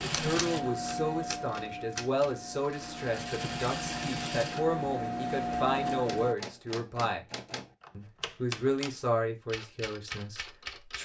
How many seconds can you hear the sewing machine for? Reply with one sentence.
You can hear the sewing machine for 6 seconds altogether.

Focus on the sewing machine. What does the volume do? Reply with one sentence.
The loudness of the sewing machine goes down, then up.